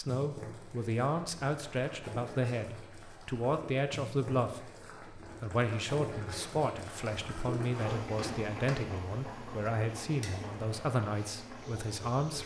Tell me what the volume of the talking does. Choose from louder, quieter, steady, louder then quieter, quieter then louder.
steady.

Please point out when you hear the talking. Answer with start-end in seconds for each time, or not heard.
0.0-12.4.